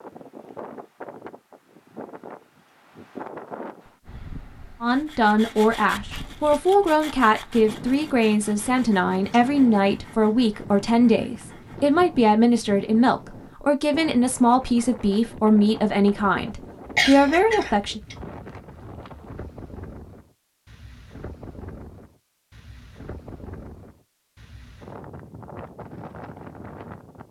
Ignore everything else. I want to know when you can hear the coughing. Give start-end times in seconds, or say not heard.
16.9-18.1.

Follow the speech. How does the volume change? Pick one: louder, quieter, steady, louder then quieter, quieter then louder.
steady.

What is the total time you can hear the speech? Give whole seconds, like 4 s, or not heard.
13 s.